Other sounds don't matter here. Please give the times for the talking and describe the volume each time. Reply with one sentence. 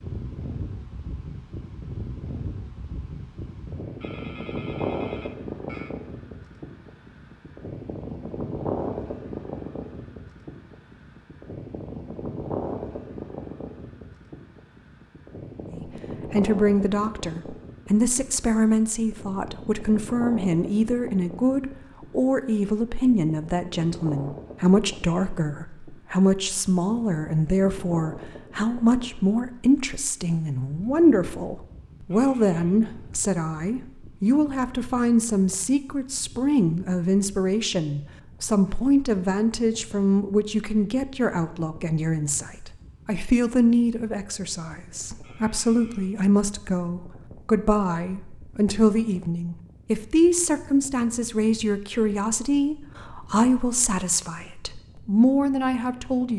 The talking can be heard from 15.8 to 56.3 s, at a steady volume.